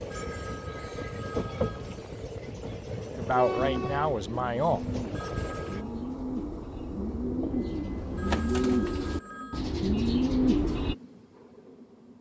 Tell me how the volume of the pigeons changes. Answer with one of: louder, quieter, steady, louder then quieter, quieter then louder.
louder.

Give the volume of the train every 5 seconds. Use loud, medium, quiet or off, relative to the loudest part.
loud, medium, quiet.